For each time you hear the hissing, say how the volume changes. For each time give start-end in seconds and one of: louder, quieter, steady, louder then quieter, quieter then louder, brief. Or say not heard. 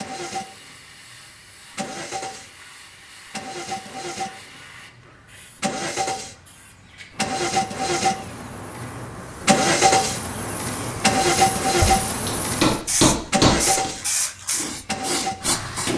0.2-15.9 louder.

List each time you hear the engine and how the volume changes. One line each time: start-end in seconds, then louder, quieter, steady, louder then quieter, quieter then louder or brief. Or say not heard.
0.0-15.9 louder then quieter.